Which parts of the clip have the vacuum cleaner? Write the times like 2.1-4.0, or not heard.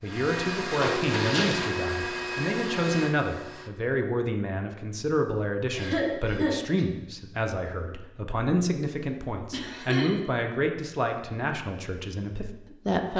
0.0-3.7.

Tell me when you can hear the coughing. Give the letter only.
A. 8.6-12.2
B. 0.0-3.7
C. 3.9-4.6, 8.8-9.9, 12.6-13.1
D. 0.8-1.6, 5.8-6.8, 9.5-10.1
D.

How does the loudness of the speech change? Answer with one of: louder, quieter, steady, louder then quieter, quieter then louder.
steady.